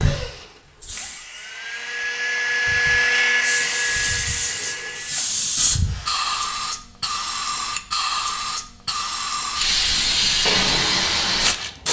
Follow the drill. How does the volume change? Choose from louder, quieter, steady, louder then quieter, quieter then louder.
louder then quieter.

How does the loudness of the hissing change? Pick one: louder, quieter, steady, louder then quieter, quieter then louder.
louder.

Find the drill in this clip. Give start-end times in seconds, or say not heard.
0.0-6.3.